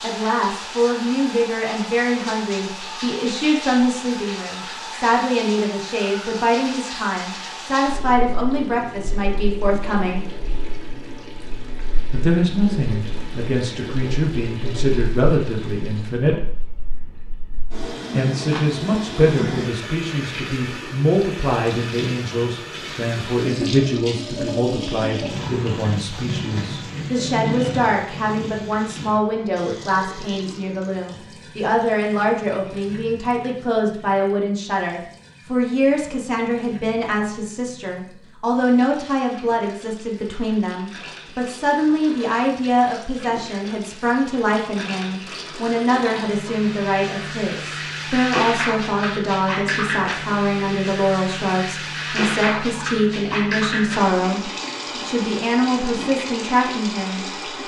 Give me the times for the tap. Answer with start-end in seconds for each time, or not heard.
0.0-57.6.